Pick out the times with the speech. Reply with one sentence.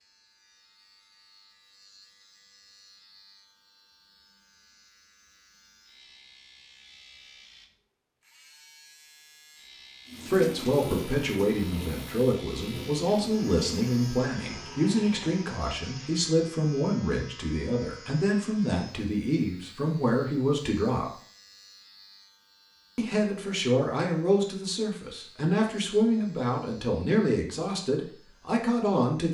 The speech can be heard from 10.2 to 21.1 s and from 22.9 to 29.3 s.